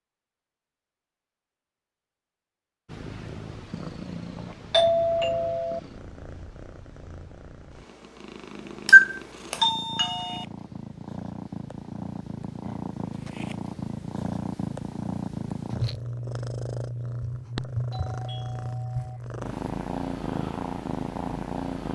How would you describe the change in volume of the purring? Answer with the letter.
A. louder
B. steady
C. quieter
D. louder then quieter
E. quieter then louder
A.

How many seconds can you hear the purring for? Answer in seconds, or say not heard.
19 s.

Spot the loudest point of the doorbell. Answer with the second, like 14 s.
9 s.